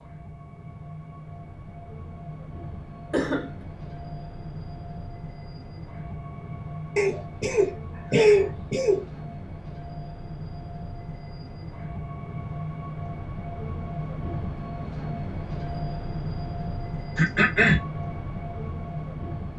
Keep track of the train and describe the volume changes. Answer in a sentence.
The volume of the train goes up.